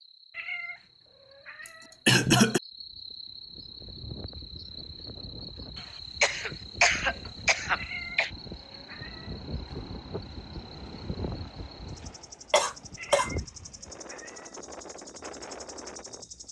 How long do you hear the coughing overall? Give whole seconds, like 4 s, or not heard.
4 s.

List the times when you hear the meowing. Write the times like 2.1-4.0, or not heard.
0.3-1.9, 7.8-9.4, 12.9-14.6.